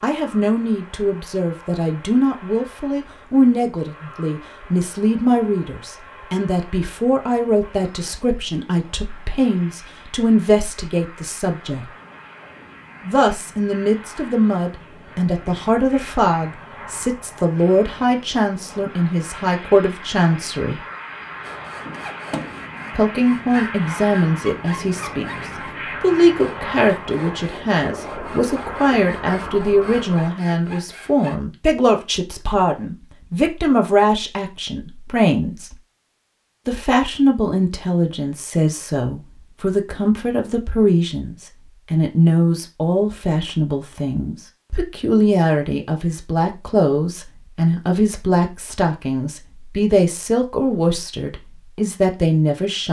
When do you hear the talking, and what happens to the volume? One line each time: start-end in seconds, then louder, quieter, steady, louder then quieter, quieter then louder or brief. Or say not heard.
0.0-11.9 steady
13.1-20.8 steady
22.9-25.3 brief
26.0-35.8 steady
36.6-52.8 steady.